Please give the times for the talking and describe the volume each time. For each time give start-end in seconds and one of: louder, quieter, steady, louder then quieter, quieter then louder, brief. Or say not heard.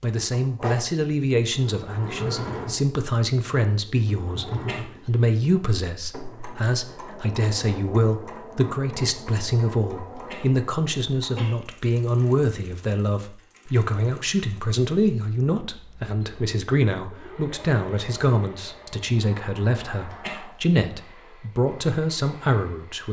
0.0-23.0 steady.